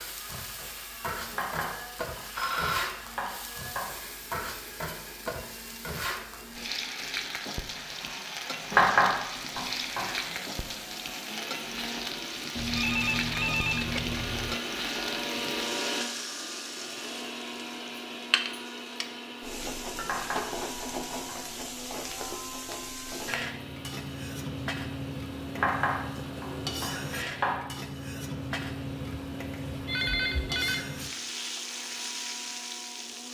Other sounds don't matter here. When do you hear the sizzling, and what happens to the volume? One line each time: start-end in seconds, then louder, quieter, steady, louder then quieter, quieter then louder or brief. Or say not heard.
0.0-33.2 steady.